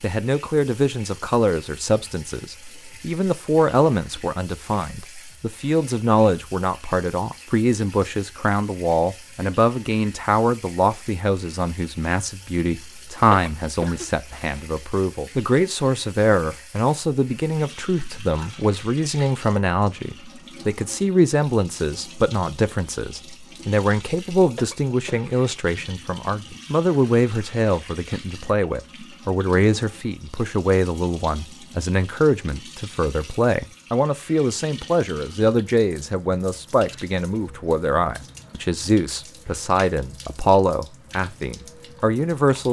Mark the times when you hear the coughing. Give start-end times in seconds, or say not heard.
13.3-14.6, 24.6-25.3.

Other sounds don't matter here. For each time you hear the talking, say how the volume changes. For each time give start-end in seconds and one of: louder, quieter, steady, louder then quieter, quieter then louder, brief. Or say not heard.
0.0-42.6 steady.